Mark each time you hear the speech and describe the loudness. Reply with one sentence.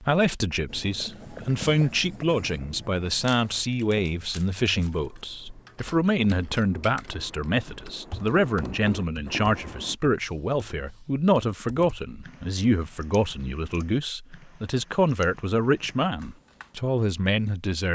You can hear the speech from 0.0 to 17.8 s, at a steady volume.